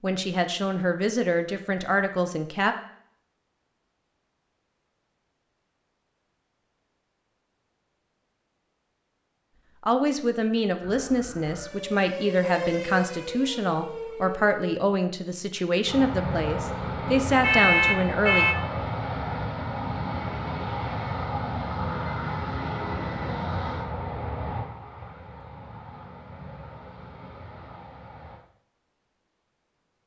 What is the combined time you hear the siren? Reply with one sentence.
You can hear the siren for 4 seconds altogether.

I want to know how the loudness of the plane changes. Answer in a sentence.
The loudness of the plane goes down.